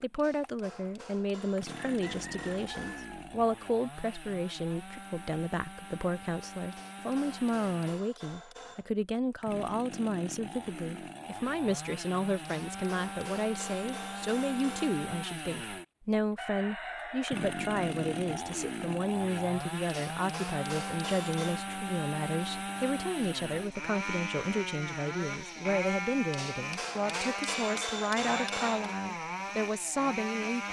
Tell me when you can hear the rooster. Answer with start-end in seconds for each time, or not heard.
1.7-3.2, 16.4-18.4.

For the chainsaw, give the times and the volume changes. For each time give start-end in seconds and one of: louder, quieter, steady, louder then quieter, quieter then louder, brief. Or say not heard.
0.0-30.6 louder.